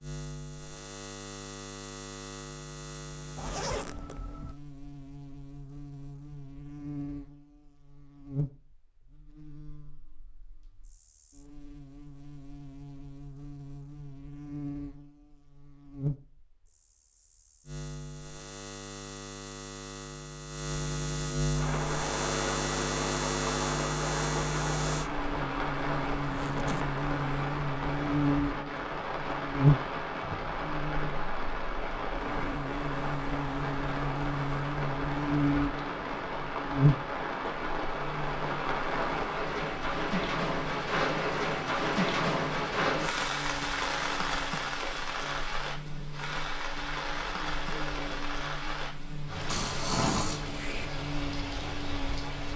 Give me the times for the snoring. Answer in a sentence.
You can hear the snoring from 49.5 to 50.9 s.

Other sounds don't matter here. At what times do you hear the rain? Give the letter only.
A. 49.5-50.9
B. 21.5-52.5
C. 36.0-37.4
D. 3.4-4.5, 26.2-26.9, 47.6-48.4
B.